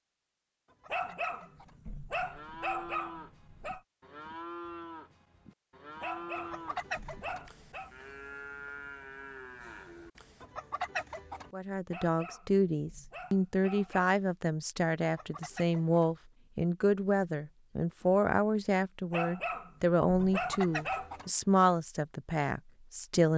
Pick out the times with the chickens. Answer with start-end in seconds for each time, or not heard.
0.7-1.8, 6.3-7.5, 10.4-11.5, 15.0-16.1, 20.2-21.3.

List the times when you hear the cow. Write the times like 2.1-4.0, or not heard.
2.2-10.4.